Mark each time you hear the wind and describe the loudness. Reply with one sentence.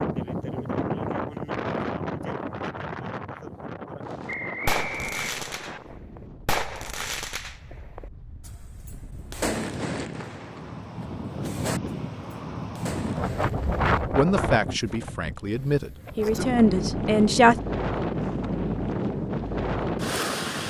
You can hear the wind from 0.0 to 20.6 s, getting quieter then louder.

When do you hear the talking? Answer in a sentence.
The talking can be heard from 14.0 to 17.6 s.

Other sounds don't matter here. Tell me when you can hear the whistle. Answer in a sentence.
The whistle can be heard from 4.2 to 5.8 s.